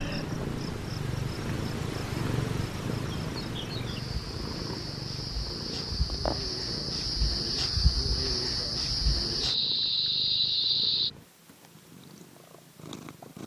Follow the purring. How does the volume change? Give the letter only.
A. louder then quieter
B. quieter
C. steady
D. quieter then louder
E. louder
B.